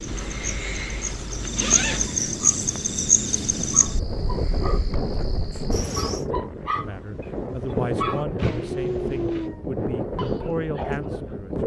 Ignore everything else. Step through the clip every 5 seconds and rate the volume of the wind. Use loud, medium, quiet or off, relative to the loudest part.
medium, loud, loud.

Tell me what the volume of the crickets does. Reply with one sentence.
The volume of the crickets goes up, then down.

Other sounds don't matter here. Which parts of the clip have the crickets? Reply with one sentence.
The crickets can be heard from 0.0 to 6.2 s.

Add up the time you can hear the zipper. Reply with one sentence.
The zipper can be heard for 3 seconds in total.